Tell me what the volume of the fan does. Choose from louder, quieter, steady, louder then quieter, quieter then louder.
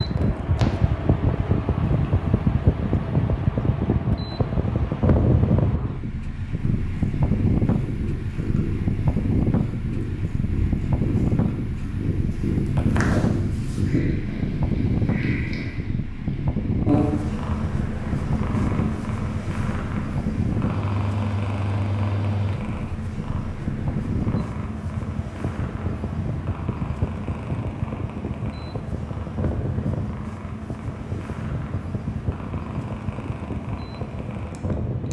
quieter.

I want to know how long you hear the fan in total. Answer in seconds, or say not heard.
35 s.